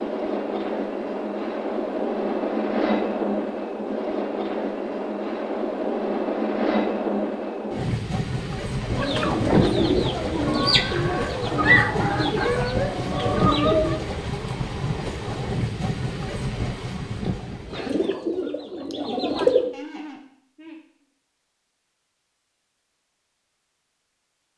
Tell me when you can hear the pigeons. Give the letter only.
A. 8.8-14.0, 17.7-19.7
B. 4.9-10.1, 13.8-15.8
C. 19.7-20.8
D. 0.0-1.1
A.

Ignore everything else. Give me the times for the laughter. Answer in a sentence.
The laughter can be heard from 19.7 to 20.8 s.